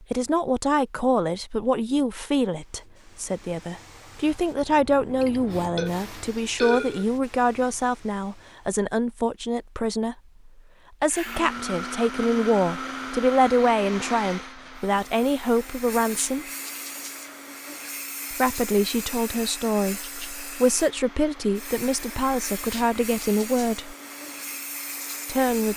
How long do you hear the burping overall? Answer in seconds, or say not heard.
2 s.